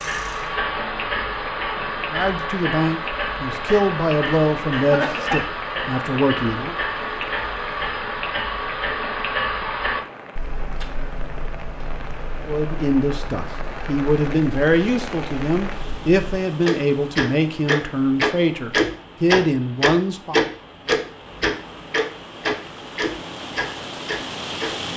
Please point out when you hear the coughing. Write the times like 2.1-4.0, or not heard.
4.7-5.5.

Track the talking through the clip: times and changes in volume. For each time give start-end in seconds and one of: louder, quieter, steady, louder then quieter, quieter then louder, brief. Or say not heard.
2.1-6.8 steady
12.4-20.4 steady.